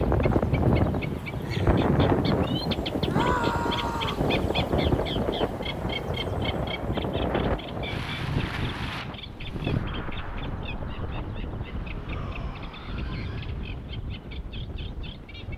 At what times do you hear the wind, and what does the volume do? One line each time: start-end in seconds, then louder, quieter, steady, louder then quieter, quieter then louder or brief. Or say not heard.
0.0-15.5 quieter.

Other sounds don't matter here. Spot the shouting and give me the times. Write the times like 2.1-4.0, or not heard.
3.0-4.2, 11.9-13.6.